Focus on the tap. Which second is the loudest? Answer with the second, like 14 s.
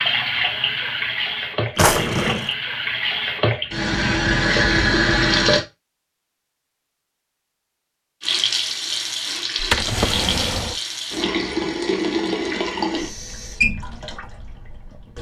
5 s.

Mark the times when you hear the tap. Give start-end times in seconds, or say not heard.
0.0-5.7, 8.2-15.1.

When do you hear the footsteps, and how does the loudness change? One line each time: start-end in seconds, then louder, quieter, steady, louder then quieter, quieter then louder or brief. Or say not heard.
not heard.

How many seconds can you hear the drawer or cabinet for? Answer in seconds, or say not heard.
2 s.